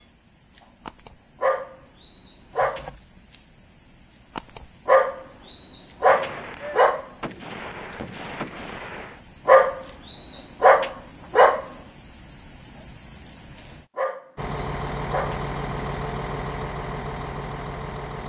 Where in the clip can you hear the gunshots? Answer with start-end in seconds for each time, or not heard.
6.0-9.2.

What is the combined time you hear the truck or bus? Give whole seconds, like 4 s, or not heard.
4 s.